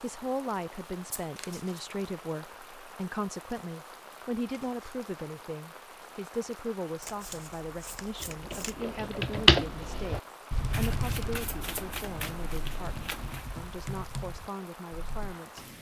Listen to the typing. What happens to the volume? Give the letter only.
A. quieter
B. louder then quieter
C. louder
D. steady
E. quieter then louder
B.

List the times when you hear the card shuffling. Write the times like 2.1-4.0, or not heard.
1.1-1.9, 7.0-8.8, 10.7-13.5.